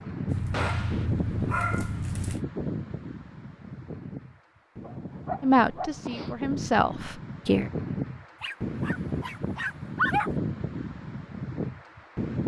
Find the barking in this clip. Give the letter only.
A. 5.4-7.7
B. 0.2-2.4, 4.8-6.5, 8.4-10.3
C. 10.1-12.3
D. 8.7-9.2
B.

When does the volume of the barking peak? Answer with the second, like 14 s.
10 s.